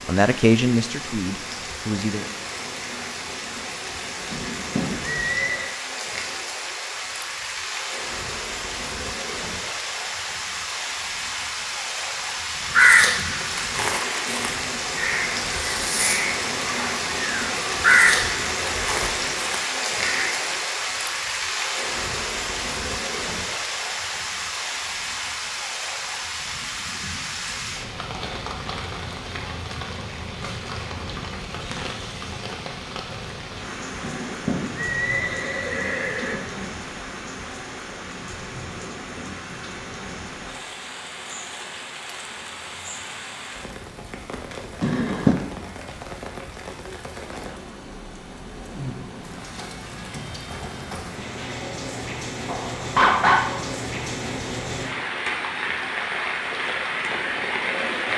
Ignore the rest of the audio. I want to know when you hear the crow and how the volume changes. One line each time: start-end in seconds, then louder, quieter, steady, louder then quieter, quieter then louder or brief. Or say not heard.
12.7-20.6 louder then quieter.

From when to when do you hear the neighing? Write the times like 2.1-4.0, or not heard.
4.3-5.8, 34.0-36.7, 44.8-45.4.